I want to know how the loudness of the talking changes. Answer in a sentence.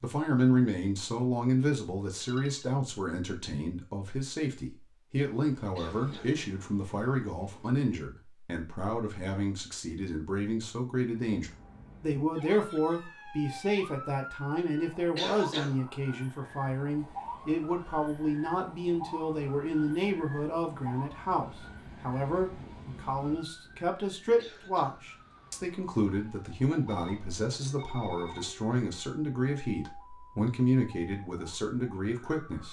The volume of the talking stays about the same.